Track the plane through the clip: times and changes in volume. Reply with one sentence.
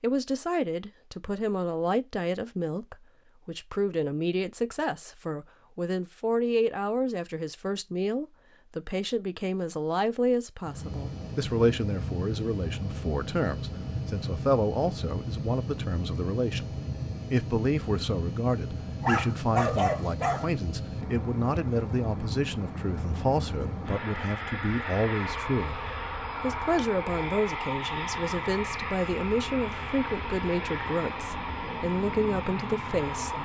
The plane can be heard from 10.7 to 33.4 s, at a steady volume.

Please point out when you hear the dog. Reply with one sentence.
You can hear the dog from 19.0 to 20.5 s.